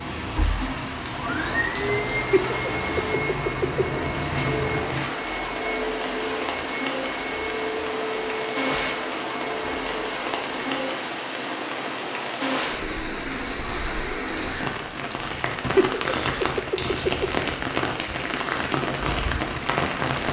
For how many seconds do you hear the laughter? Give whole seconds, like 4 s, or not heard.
3 s.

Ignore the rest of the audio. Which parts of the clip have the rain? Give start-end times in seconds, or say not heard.
0.0-20.2.